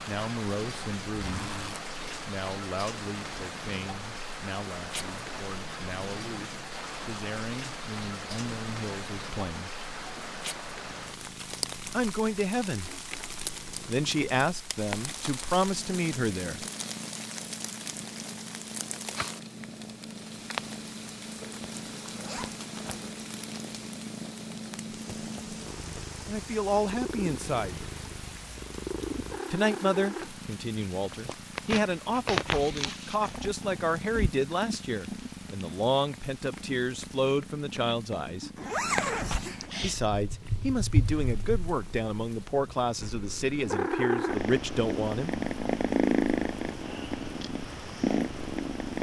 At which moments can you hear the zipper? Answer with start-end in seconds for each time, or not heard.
1.2-1.8, 21.4-23.1, 38.5-39.8.